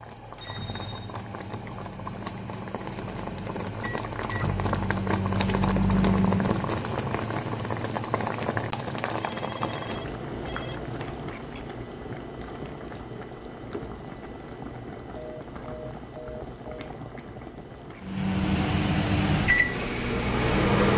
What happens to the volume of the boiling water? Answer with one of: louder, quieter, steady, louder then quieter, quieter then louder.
louder then quieter.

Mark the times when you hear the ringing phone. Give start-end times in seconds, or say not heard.
0.3-1.1, 9.2-10.8, 15.2-16.9.